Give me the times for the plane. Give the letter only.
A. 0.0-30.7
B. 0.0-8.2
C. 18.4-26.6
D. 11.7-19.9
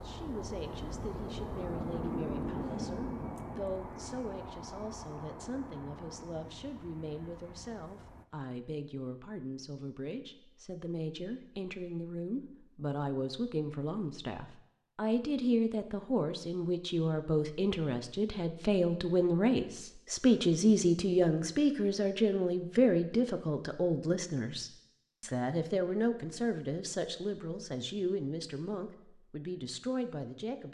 B.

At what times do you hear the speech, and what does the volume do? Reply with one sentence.
You can hear the speech from 0.0 to 30.7 s, getting louder then quieter.